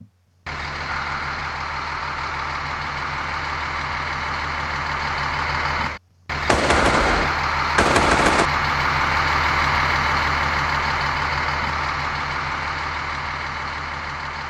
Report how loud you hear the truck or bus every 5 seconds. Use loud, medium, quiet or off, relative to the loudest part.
medium, loud, loud.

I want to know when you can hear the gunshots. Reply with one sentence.
You can hear the gunshots from 6.5 to 8.5 s.